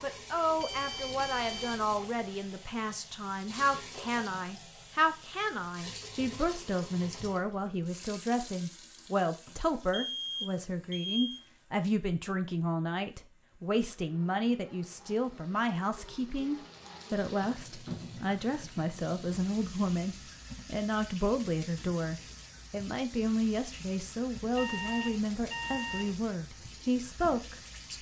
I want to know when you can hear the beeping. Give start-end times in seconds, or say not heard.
0.6-1.9, 9.4-11.4, 24.6-26.1.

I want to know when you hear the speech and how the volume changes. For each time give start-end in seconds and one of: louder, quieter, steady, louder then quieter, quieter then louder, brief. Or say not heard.
0.0-27.9 steady.